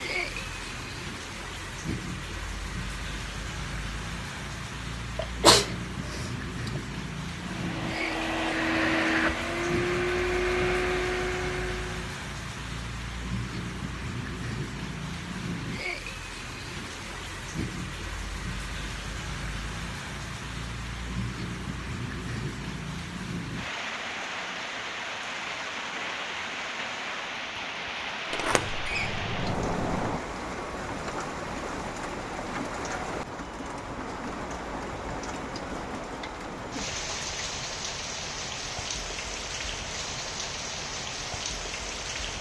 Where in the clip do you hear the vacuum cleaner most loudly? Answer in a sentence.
The volume of the vacuum cleaner peaks at 9 seconds.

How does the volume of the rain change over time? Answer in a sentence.
The volume of the rain stays about the same.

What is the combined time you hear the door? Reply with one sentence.
The door can be heard for 2 seconds in total.